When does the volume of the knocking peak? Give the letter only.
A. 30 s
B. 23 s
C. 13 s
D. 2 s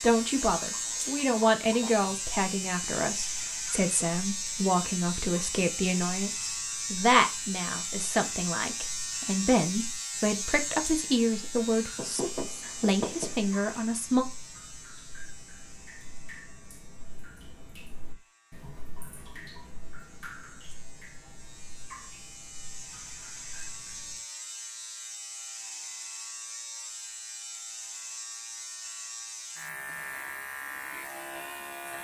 C.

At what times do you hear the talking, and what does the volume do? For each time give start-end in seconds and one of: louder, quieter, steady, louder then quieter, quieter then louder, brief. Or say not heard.
0.0-14.2 steady.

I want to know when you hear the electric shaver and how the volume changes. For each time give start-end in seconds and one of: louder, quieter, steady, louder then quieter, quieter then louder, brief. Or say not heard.
0.0-31.9 quieter then louder.